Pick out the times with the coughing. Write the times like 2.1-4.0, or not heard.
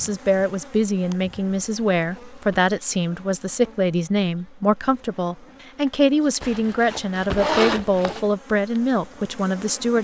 not heard.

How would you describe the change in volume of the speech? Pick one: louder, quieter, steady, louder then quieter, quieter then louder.
steady.